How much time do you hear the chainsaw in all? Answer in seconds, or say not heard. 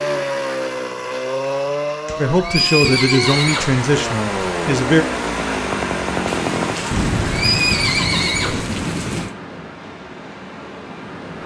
7 s.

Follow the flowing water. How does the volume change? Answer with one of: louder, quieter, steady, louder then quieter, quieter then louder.
quieter.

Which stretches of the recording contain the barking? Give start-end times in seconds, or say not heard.
not heard.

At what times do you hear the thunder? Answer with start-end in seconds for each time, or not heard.
6.2-9.3.